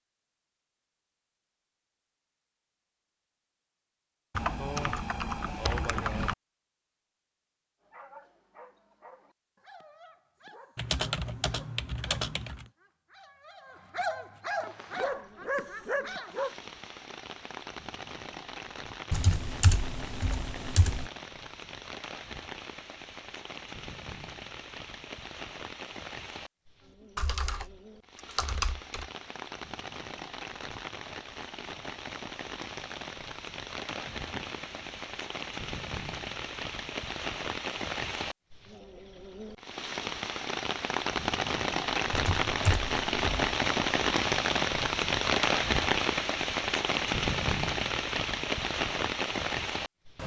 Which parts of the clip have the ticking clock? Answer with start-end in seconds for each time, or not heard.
not heard.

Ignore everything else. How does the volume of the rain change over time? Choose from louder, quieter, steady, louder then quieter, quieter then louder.
louder.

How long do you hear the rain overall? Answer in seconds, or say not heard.
36 s.